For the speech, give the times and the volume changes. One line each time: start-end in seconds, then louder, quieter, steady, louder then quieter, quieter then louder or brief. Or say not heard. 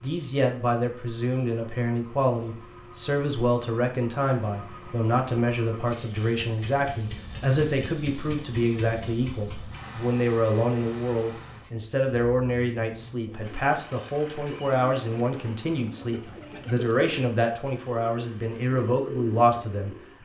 0.0-20.2 steady.